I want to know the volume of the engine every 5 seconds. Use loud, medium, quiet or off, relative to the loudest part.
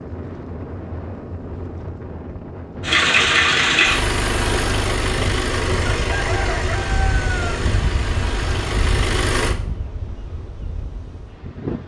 loud, medium, off.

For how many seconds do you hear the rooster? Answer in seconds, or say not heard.
2 s.